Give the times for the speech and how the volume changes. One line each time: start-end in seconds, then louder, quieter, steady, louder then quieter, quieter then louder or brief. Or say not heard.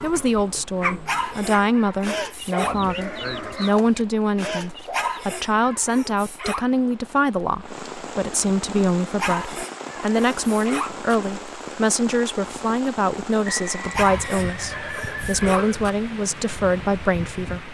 0.0-17.6 steady.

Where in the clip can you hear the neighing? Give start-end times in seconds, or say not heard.
2.6-3.7, 13.4-15.8.